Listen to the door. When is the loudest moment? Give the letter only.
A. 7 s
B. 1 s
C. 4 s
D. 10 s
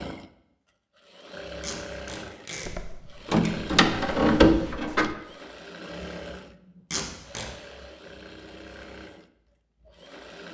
C.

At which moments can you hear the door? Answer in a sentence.
The door can be heard from 2.6 to 5.2 s.